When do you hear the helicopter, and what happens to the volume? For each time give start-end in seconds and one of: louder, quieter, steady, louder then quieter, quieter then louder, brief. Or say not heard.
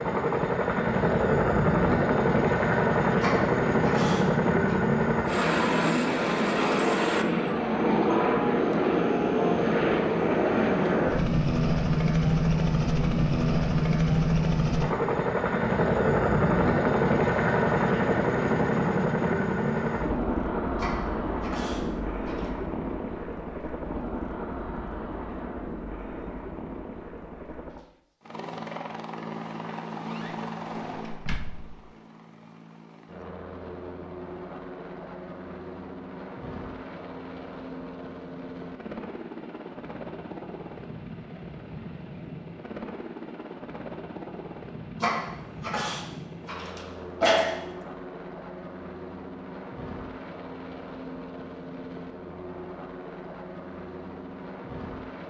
0.0-55.2 quieter.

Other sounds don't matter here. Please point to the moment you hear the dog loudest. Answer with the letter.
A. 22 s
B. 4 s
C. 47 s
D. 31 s
C.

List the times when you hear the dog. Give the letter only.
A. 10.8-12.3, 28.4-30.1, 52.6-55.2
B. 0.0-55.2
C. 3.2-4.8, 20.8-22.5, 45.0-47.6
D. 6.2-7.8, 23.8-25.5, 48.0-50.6
C.